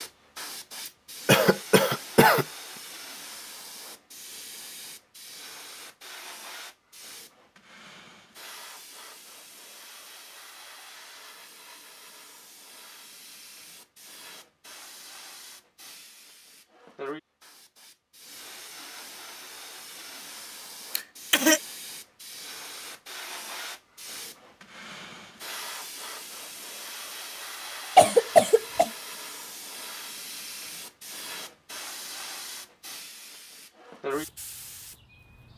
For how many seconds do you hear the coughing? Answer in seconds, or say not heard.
3 s.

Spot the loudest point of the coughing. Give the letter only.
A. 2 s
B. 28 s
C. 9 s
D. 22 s
B.